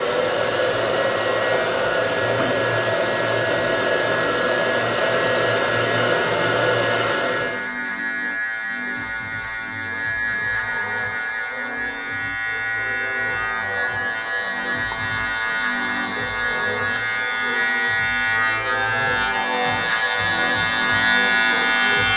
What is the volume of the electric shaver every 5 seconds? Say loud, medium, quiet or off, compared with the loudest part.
medium, medium, medium, loud, loud.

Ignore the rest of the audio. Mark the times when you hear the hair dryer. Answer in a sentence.
You can hear the hair dryer from 0.0 to 7.7 s.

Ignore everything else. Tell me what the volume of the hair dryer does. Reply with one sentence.
The volume of the hair dryer stays about the same.